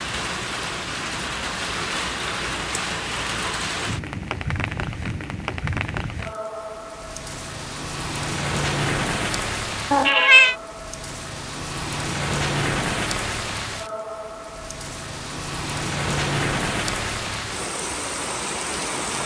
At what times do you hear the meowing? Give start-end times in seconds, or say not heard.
9.9-10.6.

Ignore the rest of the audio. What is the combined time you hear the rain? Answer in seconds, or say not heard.
19 s.